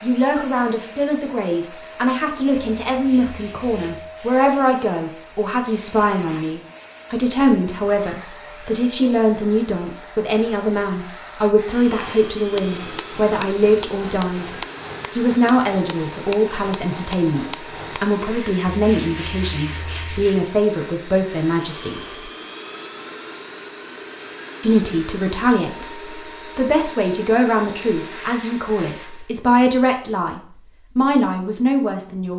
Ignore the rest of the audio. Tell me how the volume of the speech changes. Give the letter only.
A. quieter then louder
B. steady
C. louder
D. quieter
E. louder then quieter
B.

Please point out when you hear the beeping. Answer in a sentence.
The beeping can't be heard in this clip.